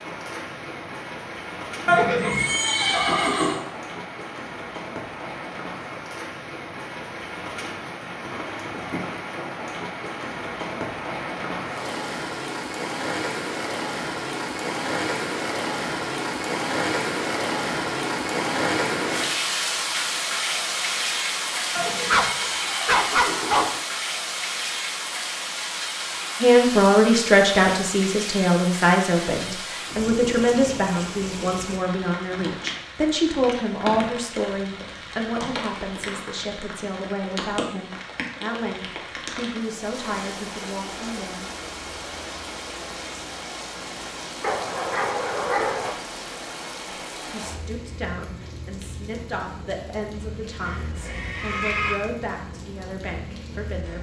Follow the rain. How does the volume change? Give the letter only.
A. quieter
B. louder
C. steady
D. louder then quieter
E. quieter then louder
D.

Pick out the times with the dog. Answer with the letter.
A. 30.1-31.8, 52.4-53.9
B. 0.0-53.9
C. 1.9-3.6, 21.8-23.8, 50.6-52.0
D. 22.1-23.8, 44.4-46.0
D.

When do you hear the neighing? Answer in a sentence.
You can hear the neighing from 1.9 to 3.6 s, from 21.8 to 23.8 s and from 50.6 to 52.0 s.